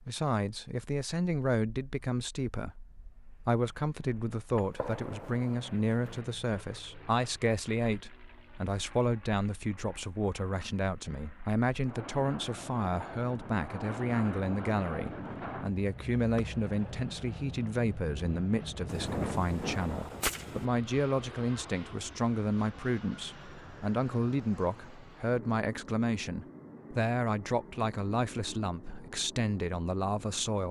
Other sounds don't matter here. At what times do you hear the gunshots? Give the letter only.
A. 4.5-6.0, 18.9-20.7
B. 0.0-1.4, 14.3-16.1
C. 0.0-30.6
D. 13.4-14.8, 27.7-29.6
A.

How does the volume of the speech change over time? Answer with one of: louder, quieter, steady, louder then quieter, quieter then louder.
steady.